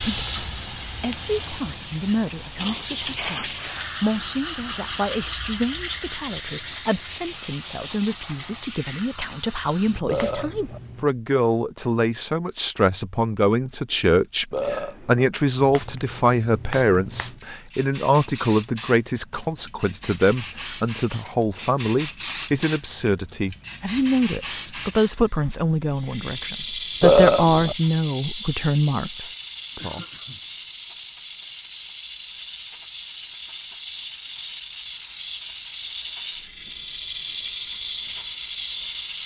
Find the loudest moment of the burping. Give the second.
27 s.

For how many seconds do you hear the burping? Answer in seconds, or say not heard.
2 s.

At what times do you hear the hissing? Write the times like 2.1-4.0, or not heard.
0.0-11.1, 15.6-39.2.